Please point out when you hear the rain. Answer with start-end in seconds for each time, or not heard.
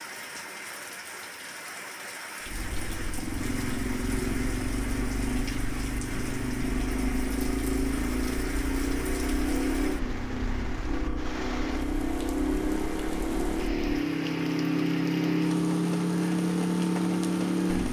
0.0-17.8.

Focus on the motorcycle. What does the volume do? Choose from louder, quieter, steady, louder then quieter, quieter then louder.
louder.